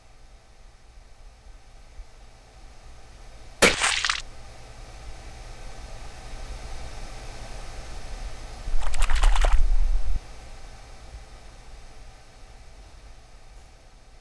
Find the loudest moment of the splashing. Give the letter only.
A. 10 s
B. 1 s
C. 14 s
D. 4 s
D.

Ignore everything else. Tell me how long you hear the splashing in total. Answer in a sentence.
The splashing can be heard for 2 seconds in total.